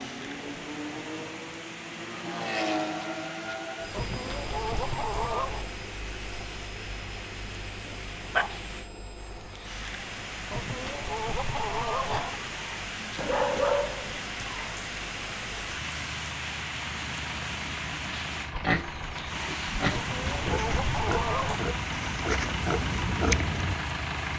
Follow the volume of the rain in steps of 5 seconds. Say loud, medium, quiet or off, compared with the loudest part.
medium, medium, loud, loud, loud.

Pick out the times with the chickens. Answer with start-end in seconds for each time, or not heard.
3.9-5.7, 10.5-12.4, 19.9-21.6.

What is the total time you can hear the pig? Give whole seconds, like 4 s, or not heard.
5 s.